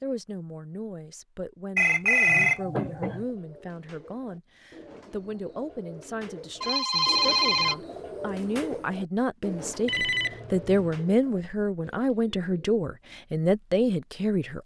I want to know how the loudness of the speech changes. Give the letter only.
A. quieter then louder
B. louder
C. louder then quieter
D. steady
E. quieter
B.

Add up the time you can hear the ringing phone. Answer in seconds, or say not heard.
4 s.